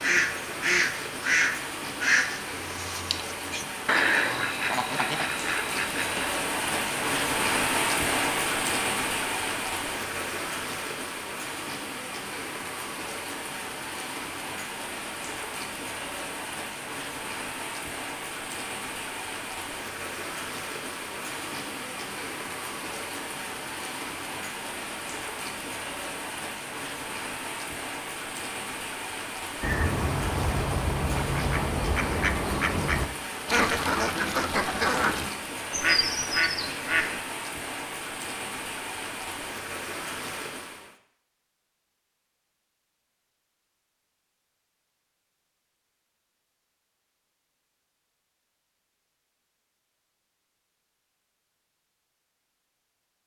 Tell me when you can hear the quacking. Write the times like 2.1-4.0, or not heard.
0.0-6.3, 29.6-37.2.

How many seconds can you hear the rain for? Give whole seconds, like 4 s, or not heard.
41 s.